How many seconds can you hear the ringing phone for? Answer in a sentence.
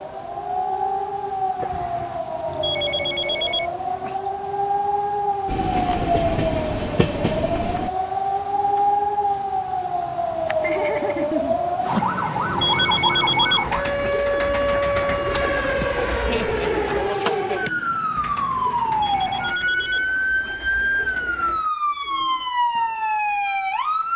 The ringing phone can be heard for 5 seconds in total.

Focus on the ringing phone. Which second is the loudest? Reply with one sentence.
The loudest moment of the ringing phone is at 13 seconds.